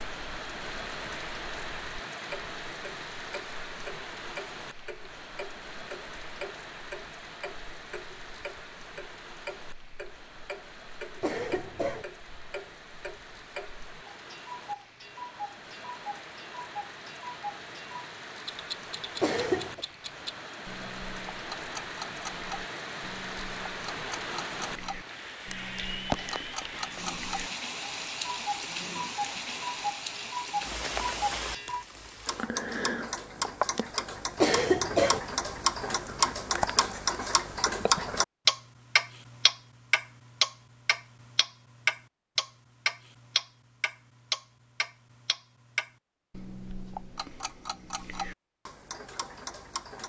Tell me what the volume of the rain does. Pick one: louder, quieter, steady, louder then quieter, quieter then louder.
quieter then louder.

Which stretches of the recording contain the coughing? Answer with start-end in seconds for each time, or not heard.
11.2-12.1, 19.2-19.9, 34.4-35.2.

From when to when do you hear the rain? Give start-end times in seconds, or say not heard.
0.0-32.5.